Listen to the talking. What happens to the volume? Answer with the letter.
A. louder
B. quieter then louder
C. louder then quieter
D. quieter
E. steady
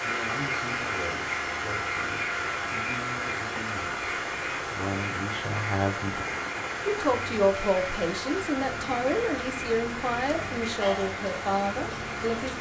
A.